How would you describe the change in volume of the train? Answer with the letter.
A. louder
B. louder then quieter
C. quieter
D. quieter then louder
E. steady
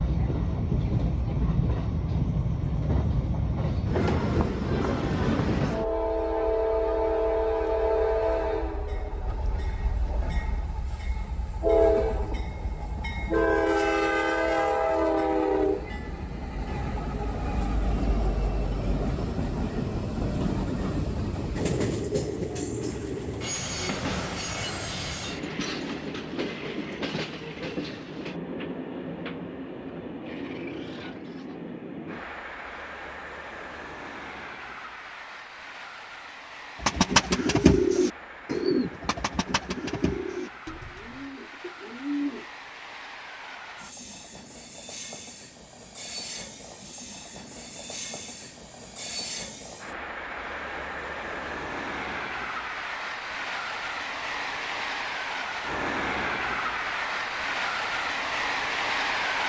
D.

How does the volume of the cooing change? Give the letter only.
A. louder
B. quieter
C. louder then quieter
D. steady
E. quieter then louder
B.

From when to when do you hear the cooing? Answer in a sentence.
You can hear the cooing from 36.8 to 42.5 s.